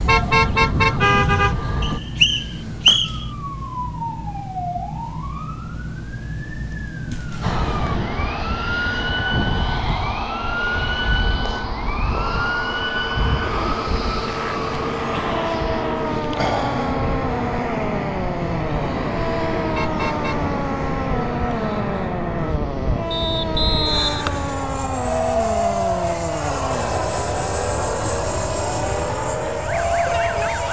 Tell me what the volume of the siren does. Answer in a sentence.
The volume of the siren stays about the same.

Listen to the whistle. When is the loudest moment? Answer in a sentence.
The loudest moment of the whistle is at 3 seconds.